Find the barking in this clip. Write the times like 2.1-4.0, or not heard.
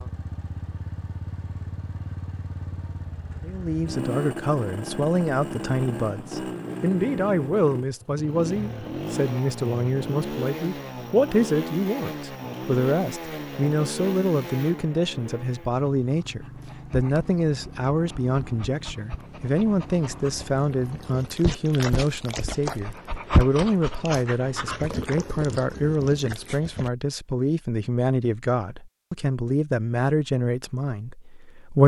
15.7-26.9.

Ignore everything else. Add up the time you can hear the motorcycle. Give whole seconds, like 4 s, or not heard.
21 s.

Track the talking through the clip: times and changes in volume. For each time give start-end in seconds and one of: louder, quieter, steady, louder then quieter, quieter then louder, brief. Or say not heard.
3.4-31.8 steady.